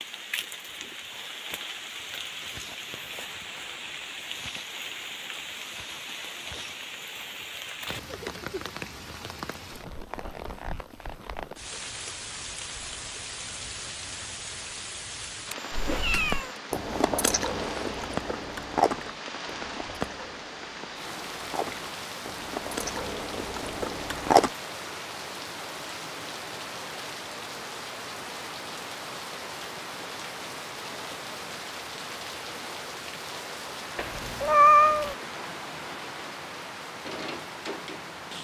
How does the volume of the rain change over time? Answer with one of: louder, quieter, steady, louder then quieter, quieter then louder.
steady.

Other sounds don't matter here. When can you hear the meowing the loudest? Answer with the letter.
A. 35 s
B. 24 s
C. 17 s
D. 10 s
A.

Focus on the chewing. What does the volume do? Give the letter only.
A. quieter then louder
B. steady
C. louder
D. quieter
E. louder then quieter
A.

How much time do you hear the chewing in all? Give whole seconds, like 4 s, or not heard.
9 s.